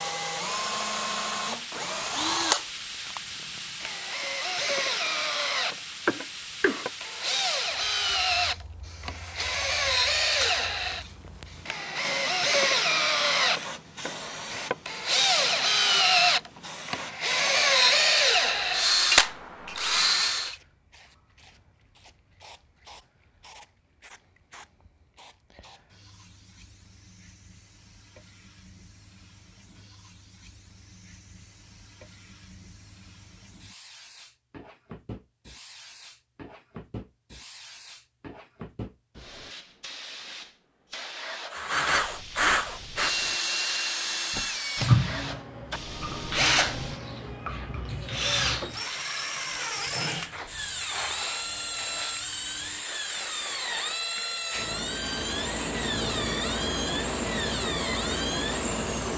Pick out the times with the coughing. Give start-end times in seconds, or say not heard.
6.0-6.8.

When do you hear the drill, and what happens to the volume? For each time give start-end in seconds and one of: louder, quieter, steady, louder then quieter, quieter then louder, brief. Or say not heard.
0.0-20.6 louder
41.5-59.1 quieter.